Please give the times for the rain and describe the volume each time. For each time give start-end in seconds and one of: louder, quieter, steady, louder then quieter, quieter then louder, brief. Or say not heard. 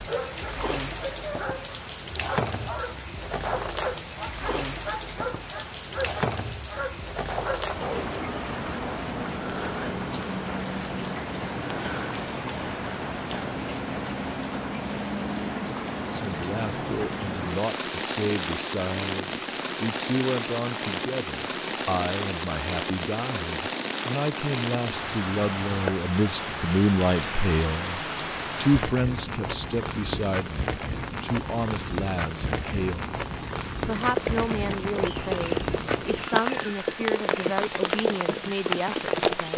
0.0-39.5 steady.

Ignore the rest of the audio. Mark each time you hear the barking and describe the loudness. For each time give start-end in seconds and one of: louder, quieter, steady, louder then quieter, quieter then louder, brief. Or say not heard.
0.1-8.2 steady.